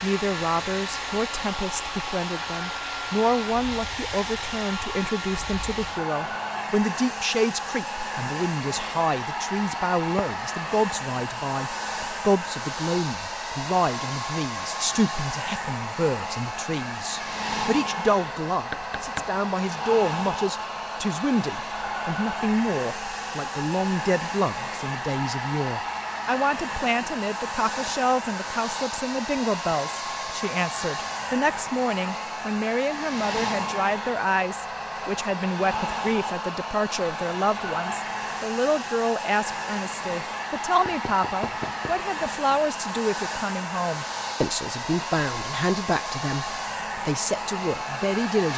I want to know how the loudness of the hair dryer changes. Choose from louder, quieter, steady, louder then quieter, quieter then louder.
steady.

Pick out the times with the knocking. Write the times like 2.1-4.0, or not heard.
18.7-19.3, 40.9-42.0.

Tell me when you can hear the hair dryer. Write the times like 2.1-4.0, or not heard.
0.0-48.5.